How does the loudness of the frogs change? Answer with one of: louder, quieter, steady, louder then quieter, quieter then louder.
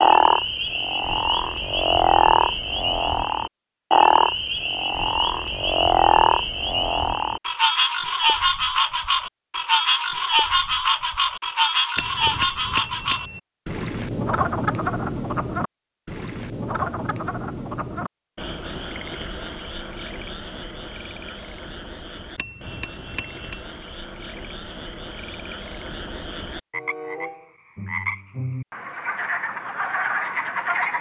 quieter then louder.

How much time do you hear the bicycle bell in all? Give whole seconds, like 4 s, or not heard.
3 s.